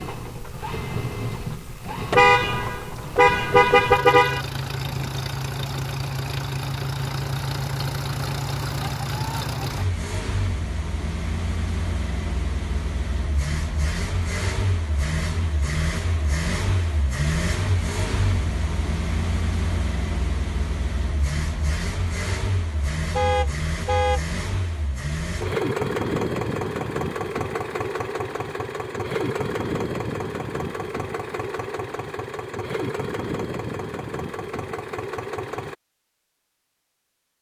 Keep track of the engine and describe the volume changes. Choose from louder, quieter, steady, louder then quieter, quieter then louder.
steady.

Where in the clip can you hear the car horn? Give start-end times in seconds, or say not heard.
2.1-4.4, 23.1-24.2.